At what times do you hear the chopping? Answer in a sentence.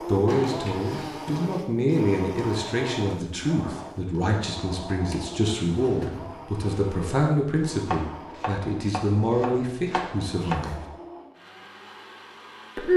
The chopping can be heard from 7.8 to 10.6 s.